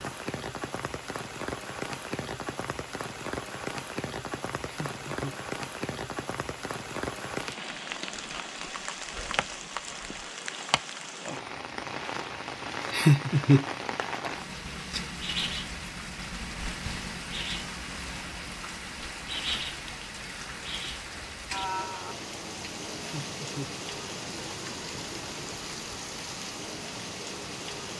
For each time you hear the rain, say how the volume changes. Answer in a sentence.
The rain can be heard from 0.0 to 27.9 s, at a steady volume.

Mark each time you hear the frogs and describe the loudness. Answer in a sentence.
The frogs can't be heard in this clip.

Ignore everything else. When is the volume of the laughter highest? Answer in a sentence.
The volume of the laughter peaks at 13 seconds.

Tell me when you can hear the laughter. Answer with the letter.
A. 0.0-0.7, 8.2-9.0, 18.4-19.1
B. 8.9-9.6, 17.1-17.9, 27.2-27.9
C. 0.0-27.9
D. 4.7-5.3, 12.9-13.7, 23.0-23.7
D.